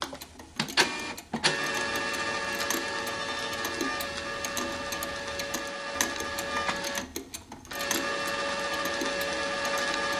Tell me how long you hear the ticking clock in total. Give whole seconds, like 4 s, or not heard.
10 s.